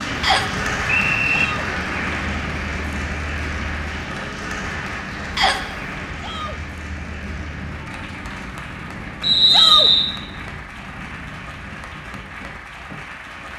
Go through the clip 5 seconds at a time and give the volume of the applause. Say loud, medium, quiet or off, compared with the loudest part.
loud, medium, medium.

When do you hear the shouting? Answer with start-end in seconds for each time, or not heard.
1.2-1.7, 6.2-6.6, 9.5-9.9.